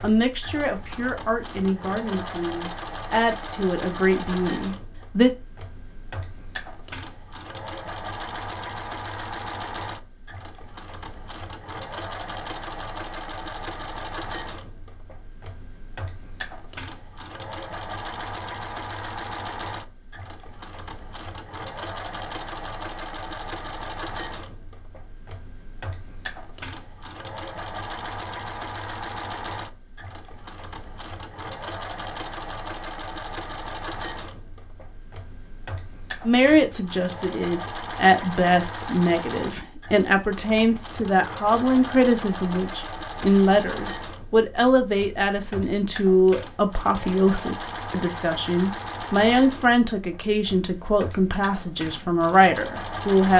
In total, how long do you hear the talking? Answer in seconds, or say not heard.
22 s.